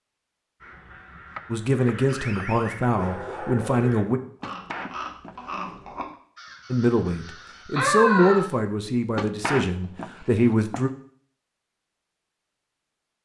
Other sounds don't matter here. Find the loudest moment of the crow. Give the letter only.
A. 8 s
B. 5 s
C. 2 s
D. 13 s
A.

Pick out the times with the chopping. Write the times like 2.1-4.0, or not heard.
1.4-2.5, 4.4-6.2, 9.2-10.9.